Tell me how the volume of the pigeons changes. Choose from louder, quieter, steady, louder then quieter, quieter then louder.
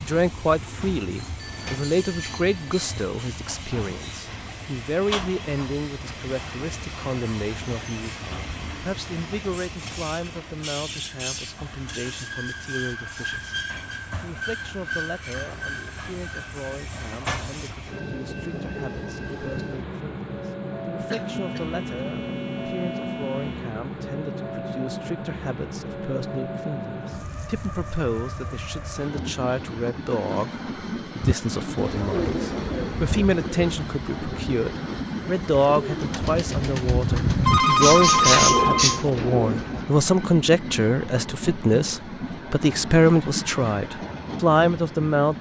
quieter then louder.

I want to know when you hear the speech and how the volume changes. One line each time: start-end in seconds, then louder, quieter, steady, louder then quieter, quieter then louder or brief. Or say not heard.
0.0-45.3 quieter then louder.